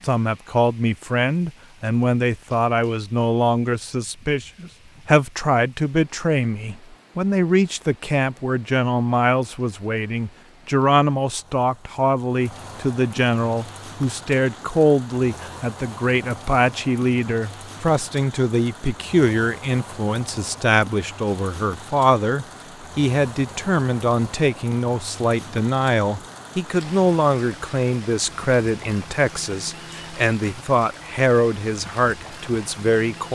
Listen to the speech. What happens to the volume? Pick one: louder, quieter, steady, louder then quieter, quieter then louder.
steady.